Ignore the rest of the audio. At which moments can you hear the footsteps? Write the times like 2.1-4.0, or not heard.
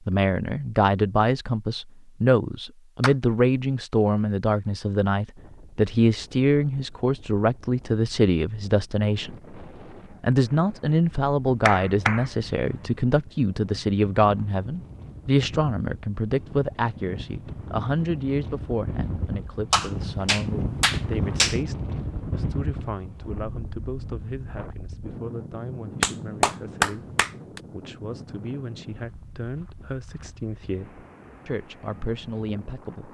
not heard.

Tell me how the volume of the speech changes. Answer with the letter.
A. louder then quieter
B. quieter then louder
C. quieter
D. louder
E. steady
C.